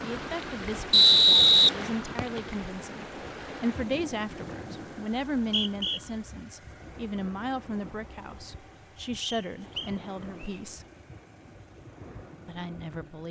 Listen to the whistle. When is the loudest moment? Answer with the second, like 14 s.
1 s.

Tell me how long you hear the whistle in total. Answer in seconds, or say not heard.
4 s.